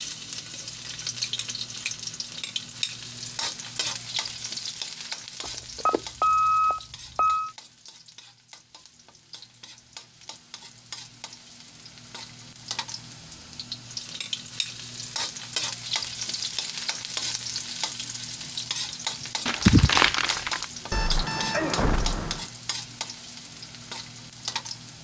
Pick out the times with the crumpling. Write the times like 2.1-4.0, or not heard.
19.4-20.6.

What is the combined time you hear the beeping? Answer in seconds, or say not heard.
4 s.